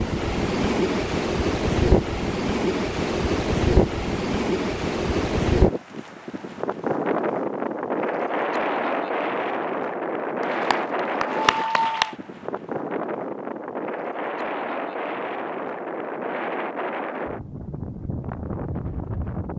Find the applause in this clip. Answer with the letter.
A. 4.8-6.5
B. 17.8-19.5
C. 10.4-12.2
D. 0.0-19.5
C.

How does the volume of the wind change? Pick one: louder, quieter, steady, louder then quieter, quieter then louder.
quieter.